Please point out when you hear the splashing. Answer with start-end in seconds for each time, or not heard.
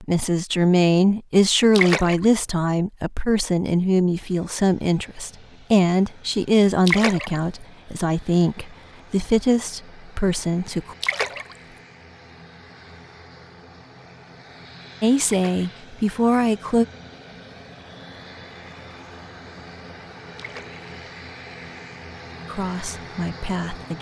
1.8-2.2, 6.8-7.4, 11.0-11.6, 15.2-15.7, 20.4-20.8.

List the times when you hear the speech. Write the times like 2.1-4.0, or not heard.
0.0-10.9, 15.0-16.9, 22.4-23.9.